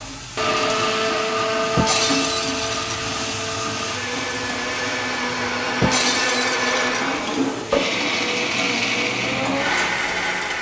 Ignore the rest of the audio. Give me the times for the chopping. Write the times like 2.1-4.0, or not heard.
not heard.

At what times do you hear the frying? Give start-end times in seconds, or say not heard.
0.0-10.5.